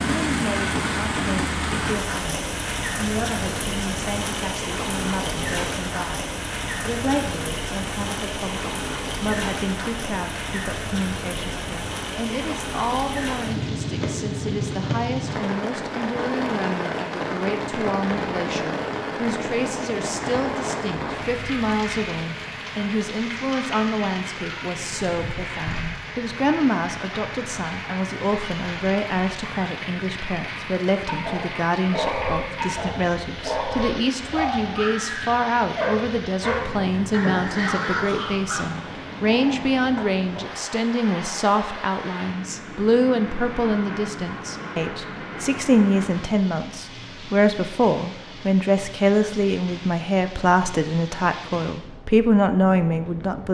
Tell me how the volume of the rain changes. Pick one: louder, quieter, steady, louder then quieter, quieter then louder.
quieter.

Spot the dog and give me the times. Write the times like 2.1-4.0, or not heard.
31.1-38.8.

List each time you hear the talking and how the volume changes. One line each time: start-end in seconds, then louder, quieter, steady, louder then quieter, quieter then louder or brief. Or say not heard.
0.1-53.4 louder.